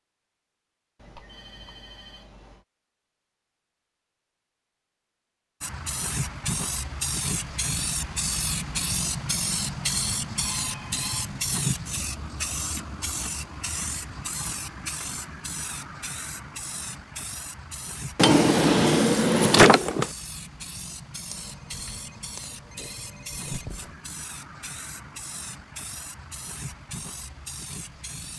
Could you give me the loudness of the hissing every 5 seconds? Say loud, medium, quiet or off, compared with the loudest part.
off, loud, loud, medium, medium, medium.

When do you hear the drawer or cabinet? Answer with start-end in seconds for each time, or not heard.
18.1-20.1.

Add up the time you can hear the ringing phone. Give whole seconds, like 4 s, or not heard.
5 s.